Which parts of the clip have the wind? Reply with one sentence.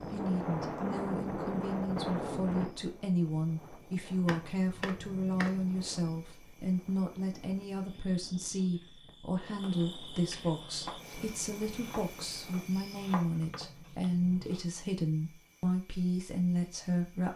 You can hear the wind from 0.0 to 12.7 s.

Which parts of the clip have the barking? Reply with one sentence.
You can't hear the barking here.